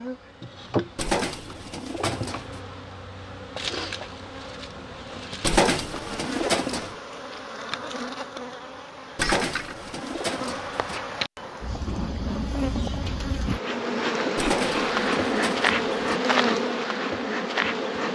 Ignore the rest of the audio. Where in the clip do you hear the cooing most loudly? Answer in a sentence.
The volume of the cooing peaks at 6 seconds.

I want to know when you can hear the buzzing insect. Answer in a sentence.
You can hear the buzzing insect from 0.0 to 18.1 s.